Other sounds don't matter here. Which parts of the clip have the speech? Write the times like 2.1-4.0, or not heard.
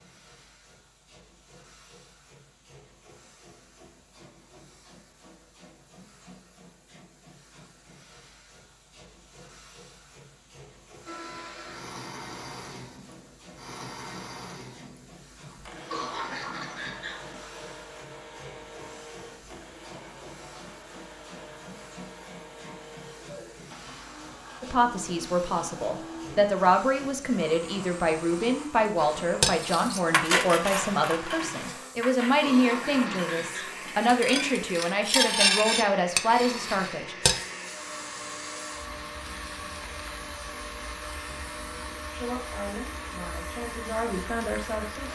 24.6-37.1, 42.1-45.1.